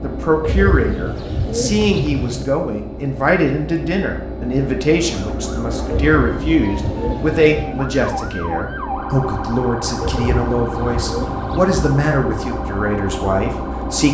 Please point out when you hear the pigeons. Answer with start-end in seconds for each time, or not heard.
0.4-2.5, 5.9-7.7, 10.0-11.8.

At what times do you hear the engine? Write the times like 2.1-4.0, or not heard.
0.0-14.1.